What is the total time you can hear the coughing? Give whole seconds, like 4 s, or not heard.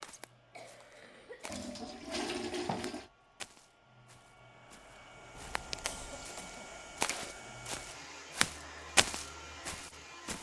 2 s.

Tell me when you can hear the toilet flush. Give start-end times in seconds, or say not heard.
1.4-3.0, 5.3-6.3.